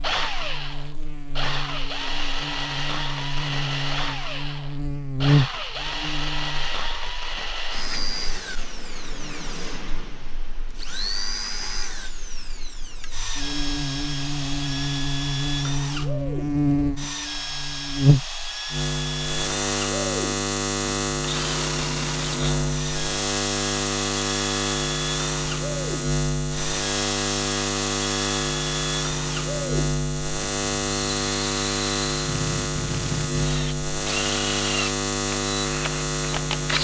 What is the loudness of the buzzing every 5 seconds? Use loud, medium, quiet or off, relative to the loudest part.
medium, loud, medium, loud, loud, loud, loud, loud.